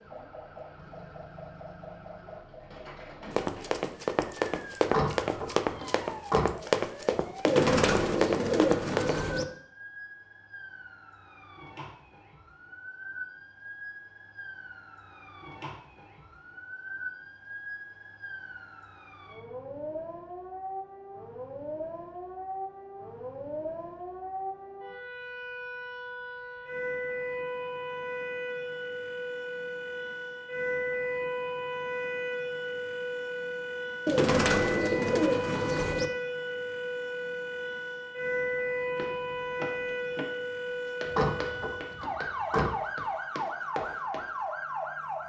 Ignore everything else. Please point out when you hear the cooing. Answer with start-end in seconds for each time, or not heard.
7.4-9.4, 34.0-36.1.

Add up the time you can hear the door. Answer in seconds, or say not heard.
3 s.